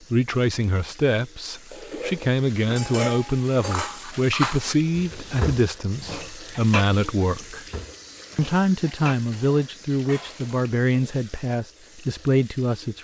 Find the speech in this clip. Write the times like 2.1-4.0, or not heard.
0.1-7.7, 8.3-12.9.